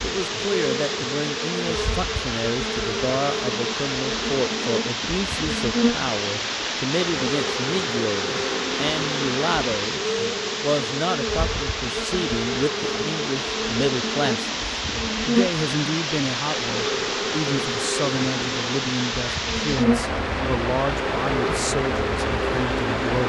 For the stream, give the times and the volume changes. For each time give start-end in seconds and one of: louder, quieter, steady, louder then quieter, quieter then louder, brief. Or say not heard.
0.0-23.2 steady.